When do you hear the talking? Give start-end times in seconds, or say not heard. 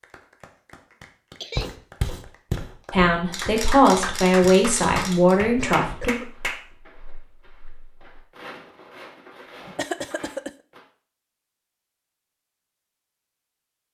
2.9-6.2.